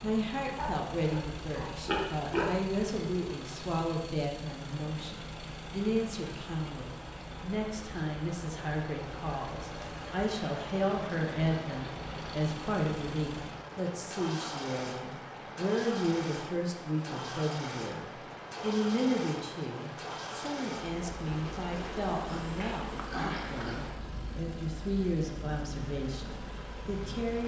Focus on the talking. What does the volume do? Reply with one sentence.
The loudness of the talking stays about the same.